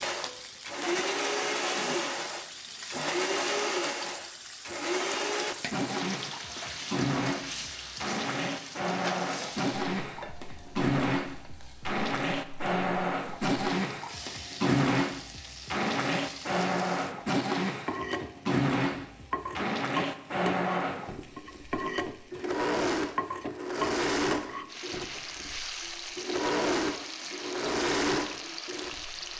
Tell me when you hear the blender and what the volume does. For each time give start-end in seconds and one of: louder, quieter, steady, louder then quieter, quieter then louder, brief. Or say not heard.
0.0-29.3 steady.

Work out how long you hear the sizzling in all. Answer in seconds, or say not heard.
29 s.